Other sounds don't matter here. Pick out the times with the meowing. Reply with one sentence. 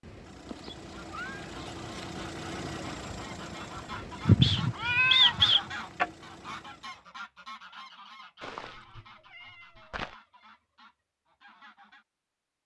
You can hear the meowing from 0.5 to 2.2 s, from 4.2 to 6.1 s and from 8.4 to 10.2 s.